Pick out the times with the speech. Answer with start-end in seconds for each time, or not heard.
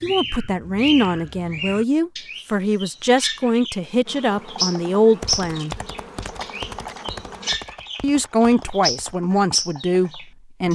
0.0-5.8, 8.0-10.7.